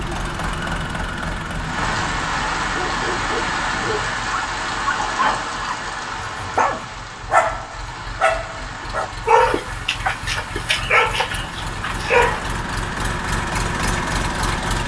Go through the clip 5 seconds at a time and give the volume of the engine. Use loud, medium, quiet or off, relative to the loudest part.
loud, quiet, loud.